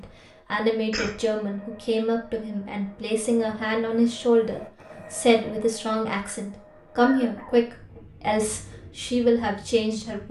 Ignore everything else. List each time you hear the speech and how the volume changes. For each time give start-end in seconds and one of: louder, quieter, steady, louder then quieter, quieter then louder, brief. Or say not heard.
0.0-10.2 steady.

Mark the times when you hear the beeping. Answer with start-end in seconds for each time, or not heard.
not heard.